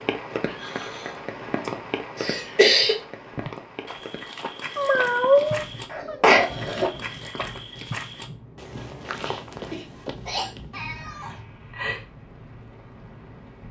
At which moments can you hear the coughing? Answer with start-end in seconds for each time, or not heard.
2.1-3.0, 5.9-6.9, 9.7-10.5.